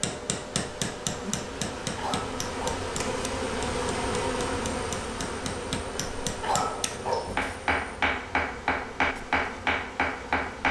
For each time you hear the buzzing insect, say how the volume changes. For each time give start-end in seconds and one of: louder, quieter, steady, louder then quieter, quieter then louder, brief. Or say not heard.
0.0-10.6 louder then quieter.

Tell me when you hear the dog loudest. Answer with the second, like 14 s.
7 s.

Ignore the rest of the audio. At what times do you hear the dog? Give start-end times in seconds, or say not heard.
1.9-2.9, 6.4-7.3.